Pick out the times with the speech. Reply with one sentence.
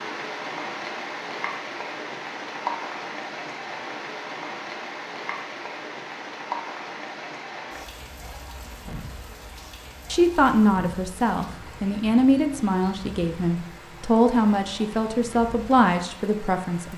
The speech can be heard from 10.1 to 16.9 s.